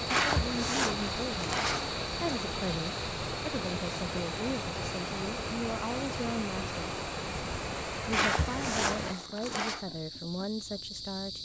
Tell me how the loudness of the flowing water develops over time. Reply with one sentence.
The volume of the flowing water stays about the same.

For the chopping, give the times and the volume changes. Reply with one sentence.
The chopping can't be heard in this clip.